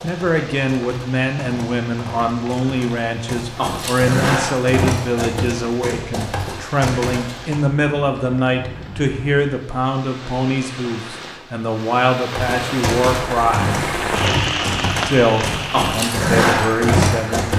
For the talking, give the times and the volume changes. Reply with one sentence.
You can hear the talking from 0.0 to 13.8 s, at a steady volume; and briefly from 15.1 to 17.5 s.